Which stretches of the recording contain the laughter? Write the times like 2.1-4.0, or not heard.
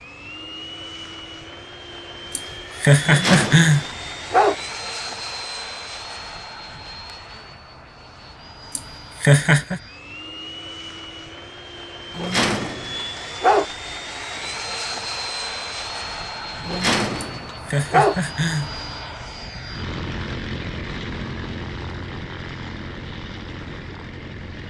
2.4-3.9, 8.8-9.8, 17.2-18.7.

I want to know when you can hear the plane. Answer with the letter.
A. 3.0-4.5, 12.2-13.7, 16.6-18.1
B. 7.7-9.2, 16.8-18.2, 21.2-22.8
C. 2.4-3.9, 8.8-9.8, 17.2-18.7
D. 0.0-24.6
D.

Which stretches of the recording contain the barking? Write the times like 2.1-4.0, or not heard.
3.0-4.5, 12.2-13.7, 16.6-18.1.